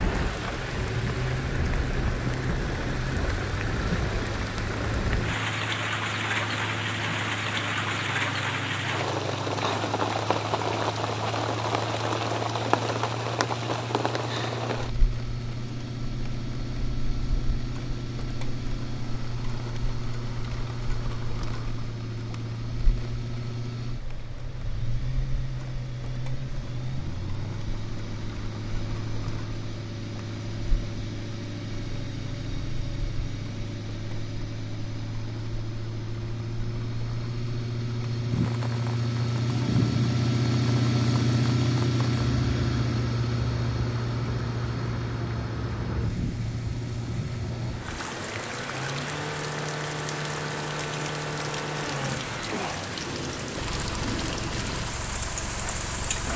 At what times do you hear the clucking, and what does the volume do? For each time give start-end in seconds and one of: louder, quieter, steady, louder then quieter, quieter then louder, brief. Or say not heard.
not heard.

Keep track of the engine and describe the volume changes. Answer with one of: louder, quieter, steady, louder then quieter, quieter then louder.
louder then quieter.